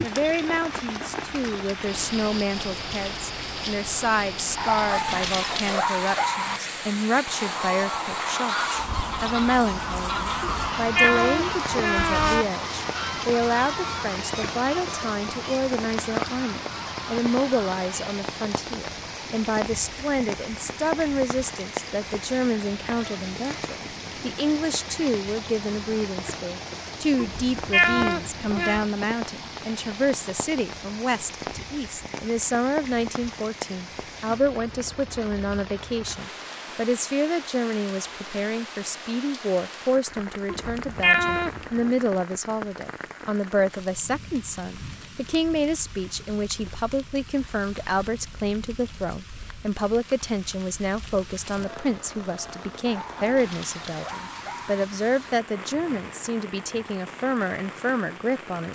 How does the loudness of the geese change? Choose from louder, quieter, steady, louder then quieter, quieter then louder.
quieter.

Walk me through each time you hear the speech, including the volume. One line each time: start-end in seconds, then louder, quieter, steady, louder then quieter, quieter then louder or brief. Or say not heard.
0.0-58.7 steady.